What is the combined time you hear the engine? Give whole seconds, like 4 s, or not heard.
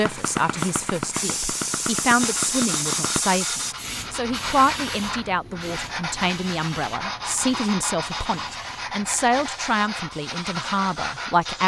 3 s.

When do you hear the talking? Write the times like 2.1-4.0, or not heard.
0.0-11.6.